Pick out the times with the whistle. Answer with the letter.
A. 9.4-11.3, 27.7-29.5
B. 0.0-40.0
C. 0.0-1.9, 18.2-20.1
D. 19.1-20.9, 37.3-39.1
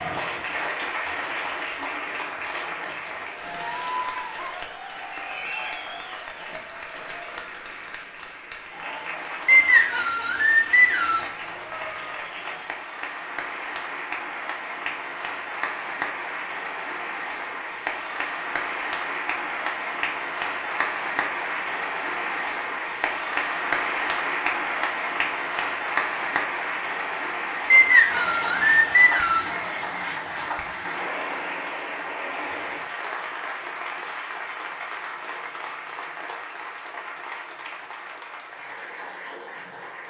A.